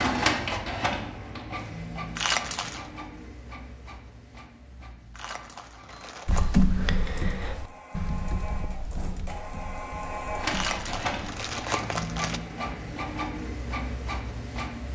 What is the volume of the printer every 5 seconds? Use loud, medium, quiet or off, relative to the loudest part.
loud, medium, loud.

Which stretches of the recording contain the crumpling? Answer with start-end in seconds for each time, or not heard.
2.1-2.9, 5.2-6.7, 10.5-12.4.